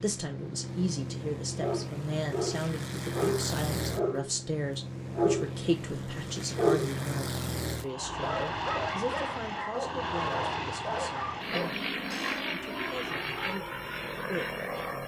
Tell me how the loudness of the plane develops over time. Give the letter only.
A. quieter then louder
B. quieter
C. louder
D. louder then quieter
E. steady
E.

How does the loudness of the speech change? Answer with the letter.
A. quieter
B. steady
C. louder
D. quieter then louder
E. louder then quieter
A.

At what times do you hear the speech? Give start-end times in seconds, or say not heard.
0.0-15.0.